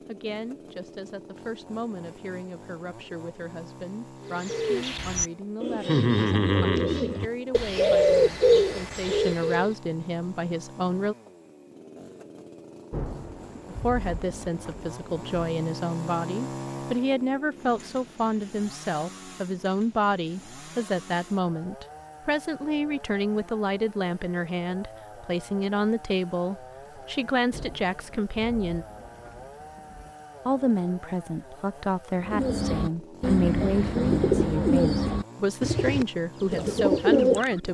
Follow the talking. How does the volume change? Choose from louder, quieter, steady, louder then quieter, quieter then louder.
louder.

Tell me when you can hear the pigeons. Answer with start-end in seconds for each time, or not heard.
4.2-9.7, 32.2-37.6.